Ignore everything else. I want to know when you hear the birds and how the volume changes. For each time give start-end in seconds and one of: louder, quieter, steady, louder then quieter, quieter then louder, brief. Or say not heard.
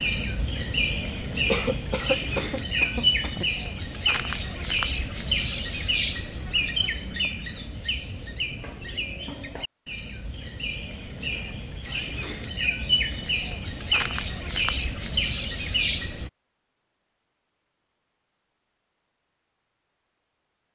0.0-16.3 quieter then louder.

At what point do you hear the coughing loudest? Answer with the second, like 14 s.
2 s.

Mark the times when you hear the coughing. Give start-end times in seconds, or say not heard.
1.5-3.5.